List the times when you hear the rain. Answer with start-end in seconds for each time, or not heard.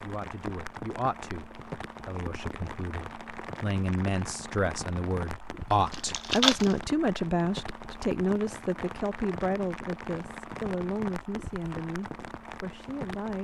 0.0-13.4.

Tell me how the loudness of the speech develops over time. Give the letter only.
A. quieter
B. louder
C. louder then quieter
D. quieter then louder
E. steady
C.